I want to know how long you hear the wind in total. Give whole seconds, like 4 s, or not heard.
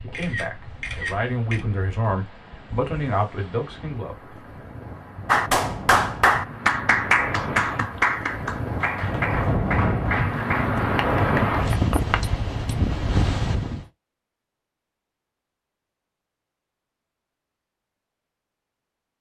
14 s.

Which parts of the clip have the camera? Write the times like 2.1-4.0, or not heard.
0.1-1.6.